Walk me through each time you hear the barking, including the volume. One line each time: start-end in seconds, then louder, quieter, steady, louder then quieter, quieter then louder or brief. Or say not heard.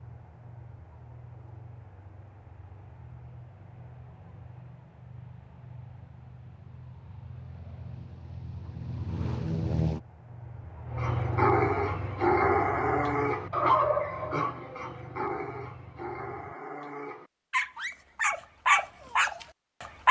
10.9-20.0 quieter then louder.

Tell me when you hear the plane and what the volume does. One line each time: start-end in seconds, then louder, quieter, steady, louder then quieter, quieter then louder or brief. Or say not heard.
0.0-16.6 louder then quieter.